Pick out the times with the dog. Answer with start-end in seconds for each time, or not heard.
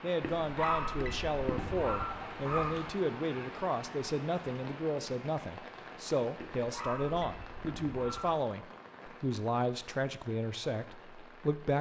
0.2-2.9, 6.3-8.4.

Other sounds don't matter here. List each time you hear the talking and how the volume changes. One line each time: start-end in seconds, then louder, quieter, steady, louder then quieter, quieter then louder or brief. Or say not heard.
0.0-11.7 steady.